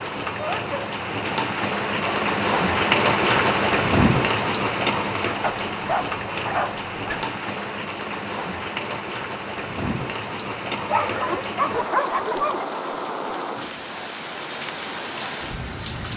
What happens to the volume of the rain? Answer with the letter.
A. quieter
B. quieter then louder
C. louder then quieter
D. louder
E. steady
A.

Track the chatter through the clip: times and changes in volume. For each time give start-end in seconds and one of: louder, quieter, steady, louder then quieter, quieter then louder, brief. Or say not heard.
not heard.